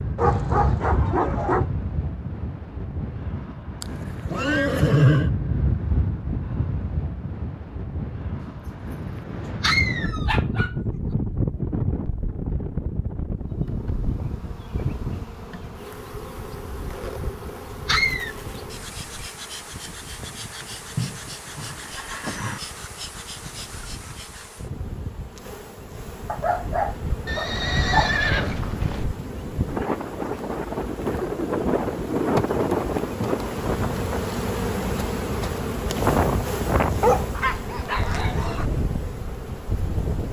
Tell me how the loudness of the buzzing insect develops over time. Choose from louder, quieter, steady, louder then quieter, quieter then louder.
louder.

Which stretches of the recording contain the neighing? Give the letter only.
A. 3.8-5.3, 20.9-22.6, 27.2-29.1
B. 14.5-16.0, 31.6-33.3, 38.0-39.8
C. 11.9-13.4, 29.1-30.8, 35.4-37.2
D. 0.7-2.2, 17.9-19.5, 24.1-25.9
A.